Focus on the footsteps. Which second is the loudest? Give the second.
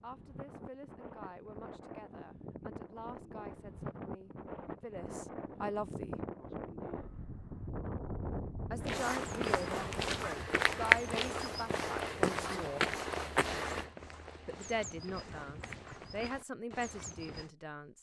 11 s.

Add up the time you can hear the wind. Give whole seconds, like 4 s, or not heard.
10 s.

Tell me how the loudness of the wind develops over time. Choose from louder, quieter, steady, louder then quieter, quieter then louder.
louder.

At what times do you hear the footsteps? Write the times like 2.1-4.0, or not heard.
8.8-17.5.